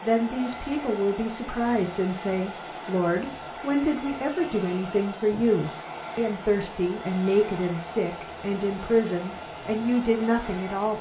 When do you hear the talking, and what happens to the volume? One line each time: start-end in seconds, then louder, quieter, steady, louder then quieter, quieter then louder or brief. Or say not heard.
0.0-10.9 steady.